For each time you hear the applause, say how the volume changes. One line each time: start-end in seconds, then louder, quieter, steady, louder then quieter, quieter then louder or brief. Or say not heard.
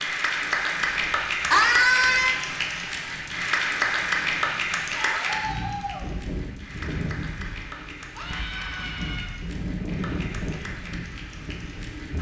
0.0-12.1 quieter.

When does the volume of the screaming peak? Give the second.
2 s.